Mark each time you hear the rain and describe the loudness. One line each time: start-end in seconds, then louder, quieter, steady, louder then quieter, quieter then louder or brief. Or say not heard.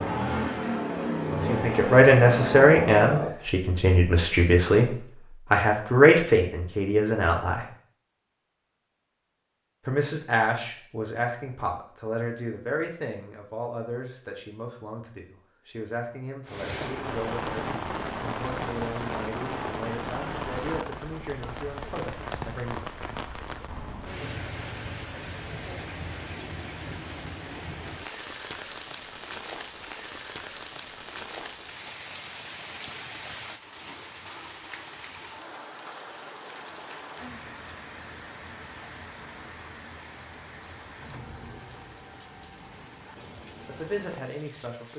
16.4-44.9 quieter.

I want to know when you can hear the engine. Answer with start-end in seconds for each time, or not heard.
0.0-3.3.